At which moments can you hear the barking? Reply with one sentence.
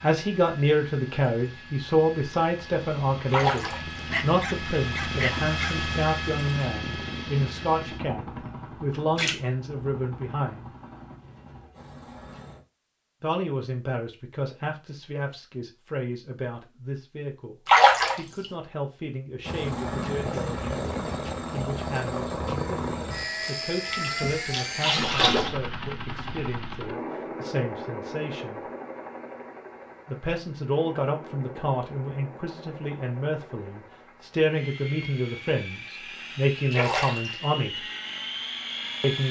The barking can be heard from 4.0 to 5.8 s.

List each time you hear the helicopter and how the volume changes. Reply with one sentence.
The helicopter can be heard from 0.0 to 12.6 s, getting louder then quieter; and from 19.4 to 39.2 s, getting quieter then louder.